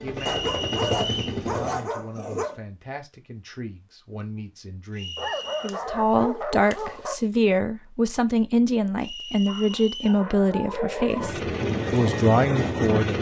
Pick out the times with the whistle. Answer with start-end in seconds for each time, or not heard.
0.1-1.4, 5.0-5.8, 9.0-10.2.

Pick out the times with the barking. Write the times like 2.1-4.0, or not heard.
0.2-2.6, 5.2-7.2, 9.4-11.4.